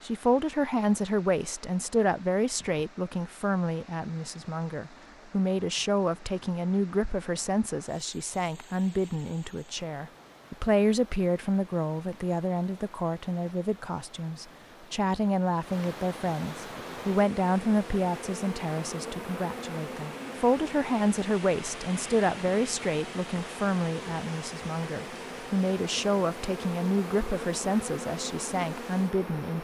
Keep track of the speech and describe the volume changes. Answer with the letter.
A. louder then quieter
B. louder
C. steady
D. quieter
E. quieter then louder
C.